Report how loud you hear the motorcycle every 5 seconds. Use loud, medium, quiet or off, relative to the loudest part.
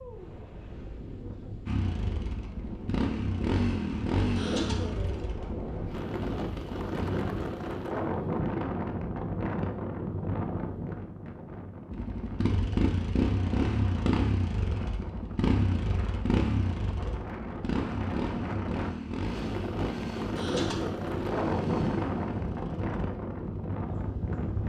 loud, medium, loud, loud, medium.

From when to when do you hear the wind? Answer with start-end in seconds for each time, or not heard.
0.0-24.6.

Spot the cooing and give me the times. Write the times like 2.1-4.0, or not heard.
4.3-5.2, 20.4-21.1.